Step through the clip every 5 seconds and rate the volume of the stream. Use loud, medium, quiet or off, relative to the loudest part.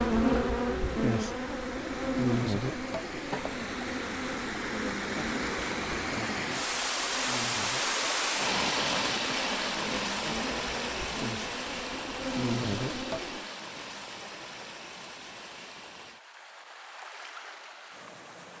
medium, loud, medium, quiet.